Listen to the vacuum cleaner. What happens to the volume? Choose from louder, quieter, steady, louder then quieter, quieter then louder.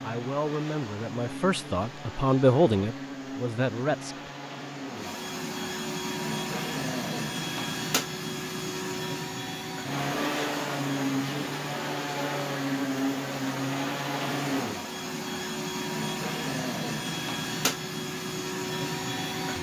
louder.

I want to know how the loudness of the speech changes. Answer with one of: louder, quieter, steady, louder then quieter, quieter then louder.
louder then quieter.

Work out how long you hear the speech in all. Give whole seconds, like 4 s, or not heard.
4 s.